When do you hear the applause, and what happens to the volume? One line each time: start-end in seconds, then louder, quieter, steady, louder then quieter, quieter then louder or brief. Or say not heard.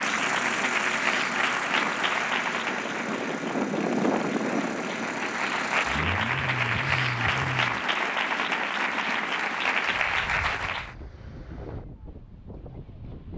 0.0-10.9 quieter then louder.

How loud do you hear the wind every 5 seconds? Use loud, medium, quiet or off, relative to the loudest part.
loud, medium, quiet.